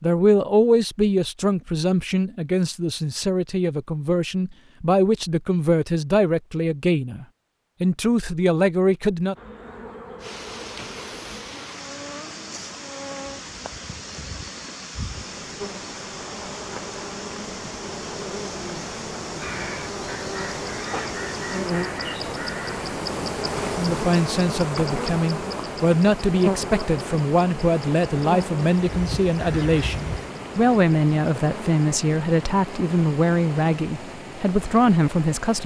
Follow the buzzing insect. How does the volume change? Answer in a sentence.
The loudness of the buzzing insect goes up, then down.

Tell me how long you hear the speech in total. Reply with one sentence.
The speech can be heard for 21 seconds in total.